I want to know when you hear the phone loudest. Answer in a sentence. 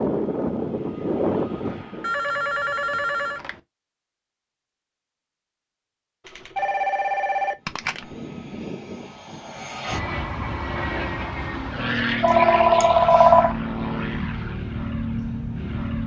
The volume of the phone peaks at 13 seconds.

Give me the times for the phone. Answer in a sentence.
The phone can be heard from 1.6 to 3.6 s, from 6.2 to 8.1 s and from 12.2 to 13.6 s.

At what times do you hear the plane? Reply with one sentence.
The plane can be heard from 0.0 to 2.1 s and from 7.5 to 16.0 s.